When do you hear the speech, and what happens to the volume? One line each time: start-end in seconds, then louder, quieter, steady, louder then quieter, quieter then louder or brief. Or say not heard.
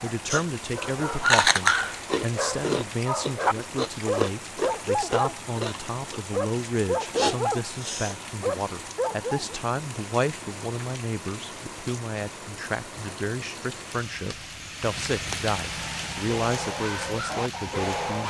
0.0-18.2 steady.